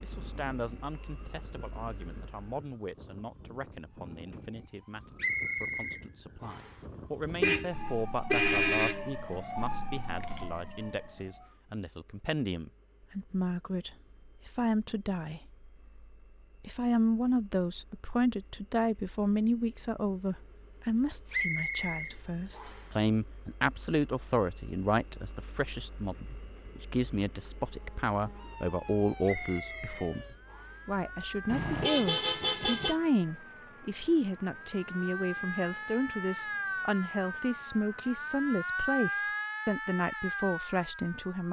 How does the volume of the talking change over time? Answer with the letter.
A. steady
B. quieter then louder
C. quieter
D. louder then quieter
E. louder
E.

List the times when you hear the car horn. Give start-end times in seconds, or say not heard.
7.4-9.1, 31.4-33.0.